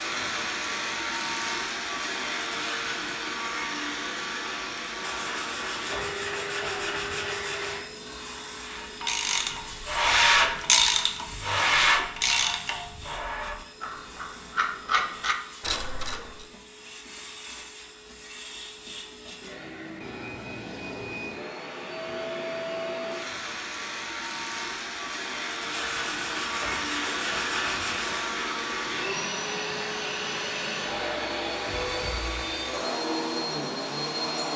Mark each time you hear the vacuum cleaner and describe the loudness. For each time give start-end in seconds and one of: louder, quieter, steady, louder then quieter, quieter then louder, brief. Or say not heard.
0.0-34.5 quieter then louder.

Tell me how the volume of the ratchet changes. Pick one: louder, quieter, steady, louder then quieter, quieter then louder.
quieter then louder.